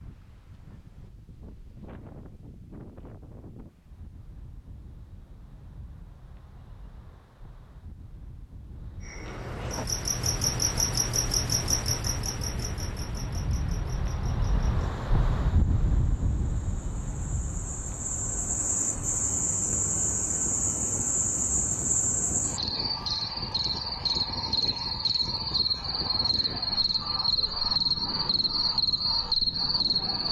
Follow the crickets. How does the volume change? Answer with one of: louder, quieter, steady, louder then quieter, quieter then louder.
quieter then louder.